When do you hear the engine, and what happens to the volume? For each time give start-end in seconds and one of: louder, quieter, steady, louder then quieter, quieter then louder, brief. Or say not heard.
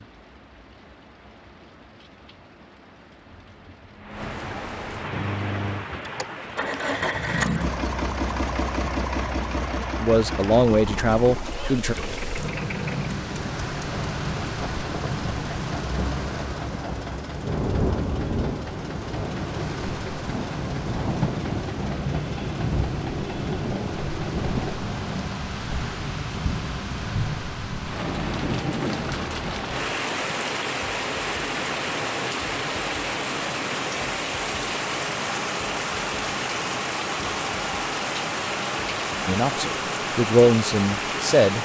5.1-24.8 quieter.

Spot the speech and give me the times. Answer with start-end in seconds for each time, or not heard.
10.0-11.9, 39.2-41.6.